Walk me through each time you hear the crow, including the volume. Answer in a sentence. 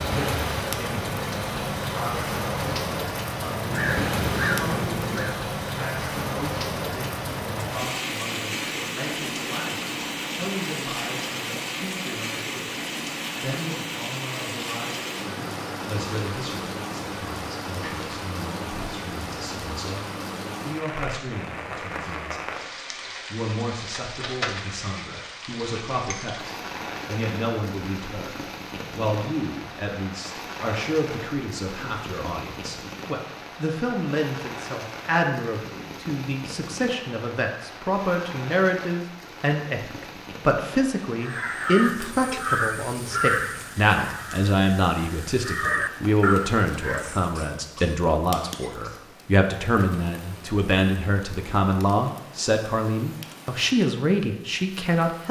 The crow can be heard briefly from 3.5 to 5.4 s; and from 41.2 to 47.1 s, getting quieter then louder.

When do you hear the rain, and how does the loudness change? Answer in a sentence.
The rain can be heard from 0.0 to 55.2 s, getting quieter.